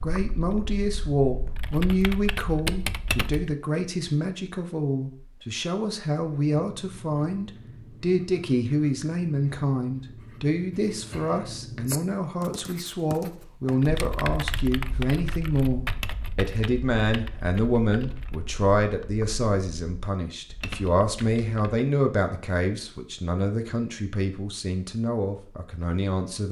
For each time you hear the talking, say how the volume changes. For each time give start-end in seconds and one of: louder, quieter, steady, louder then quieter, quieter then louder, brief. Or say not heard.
0.0-26.4 steady.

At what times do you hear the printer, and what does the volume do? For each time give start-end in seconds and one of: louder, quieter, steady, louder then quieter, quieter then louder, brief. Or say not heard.
not heard.